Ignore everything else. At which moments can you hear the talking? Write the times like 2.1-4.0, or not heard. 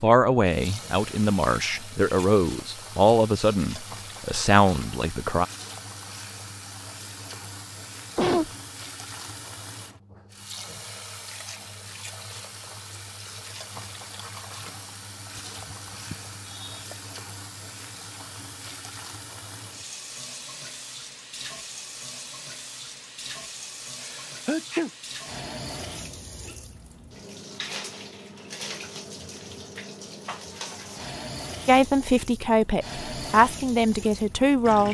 0.0-5.5, 31.6-34.8.